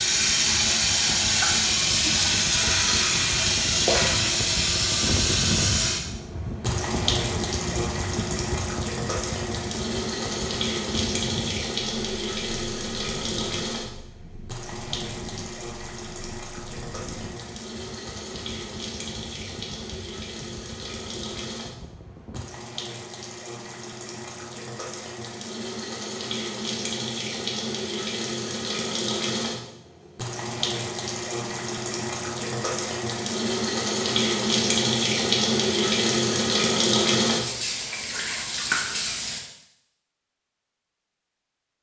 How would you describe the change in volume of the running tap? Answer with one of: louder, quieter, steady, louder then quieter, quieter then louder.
quieter then louder.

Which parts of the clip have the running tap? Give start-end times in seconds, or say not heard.
0.0-39.4.